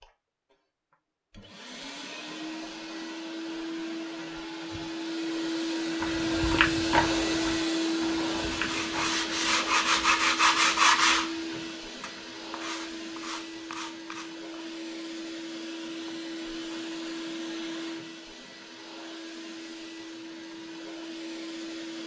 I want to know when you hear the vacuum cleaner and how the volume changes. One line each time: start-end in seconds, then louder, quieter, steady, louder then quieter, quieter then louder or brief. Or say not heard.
0.0-22.0 louder then quieter.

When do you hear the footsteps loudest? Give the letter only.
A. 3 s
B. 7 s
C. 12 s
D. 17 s
B.